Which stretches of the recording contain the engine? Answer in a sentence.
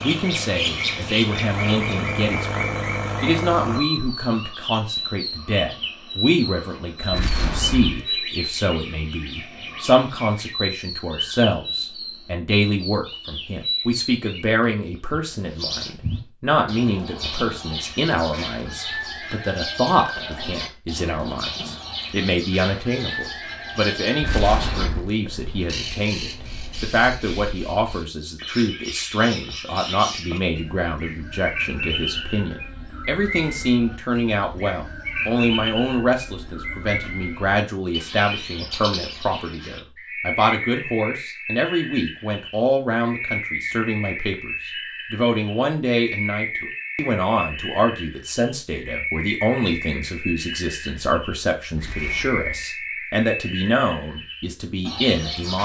You can hear the engine from 0.0 to 3.9 s.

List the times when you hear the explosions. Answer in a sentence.
The explosions can be heard from 7.1 to 8.1 s, from 24.2 to 25.1 s and from 51.8 to 52.7 s.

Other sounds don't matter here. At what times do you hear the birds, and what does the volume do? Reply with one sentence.
The birds can be heard from 0.0 to 55.6 s, at a steady volume.